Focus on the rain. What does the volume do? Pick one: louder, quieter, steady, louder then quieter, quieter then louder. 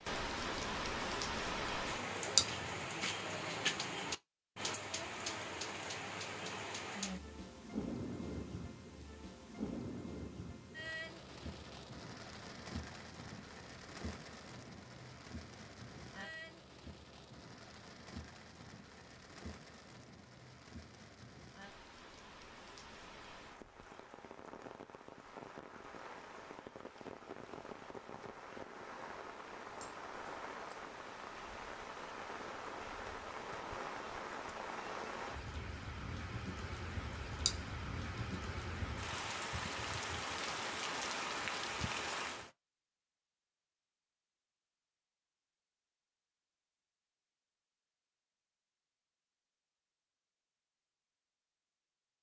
quieter then louder.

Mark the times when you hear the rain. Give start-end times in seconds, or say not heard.
0.0-42.5.